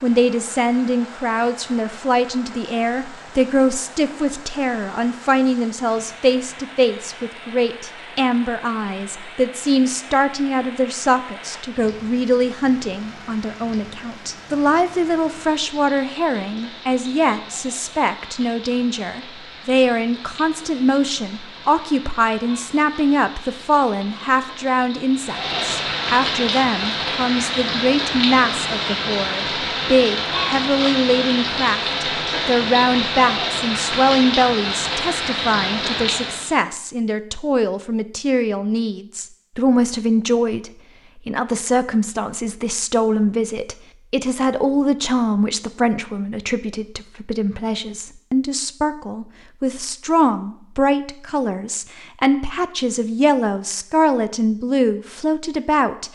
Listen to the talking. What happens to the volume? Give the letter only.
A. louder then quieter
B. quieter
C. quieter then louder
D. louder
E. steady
E.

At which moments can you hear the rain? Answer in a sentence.
The rain can be heard from 0.0 to 36.5 s.